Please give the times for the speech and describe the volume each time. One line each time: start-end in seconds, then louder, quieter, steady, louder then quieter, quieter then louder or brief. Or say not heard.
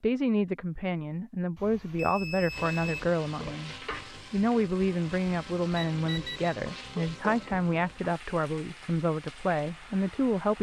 0.0-10.5 steady.